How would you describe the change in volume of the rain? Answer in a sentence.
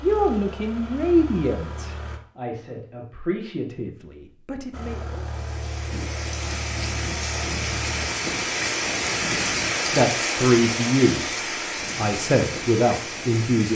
The volume of the rain goes up, then down.